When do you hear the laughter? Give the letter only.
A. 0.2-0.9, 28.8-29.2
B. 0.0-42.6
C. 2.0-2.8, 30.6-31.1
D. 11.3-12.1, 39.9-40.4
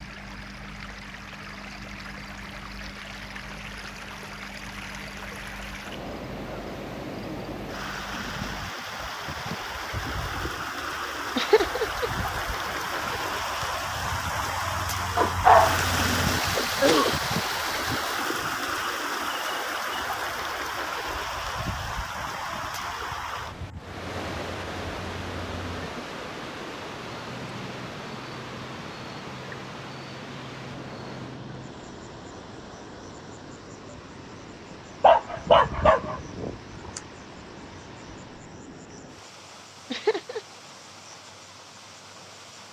D.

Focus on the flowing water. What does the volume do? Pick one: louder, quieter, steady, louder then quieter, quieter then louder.
louder then quieter.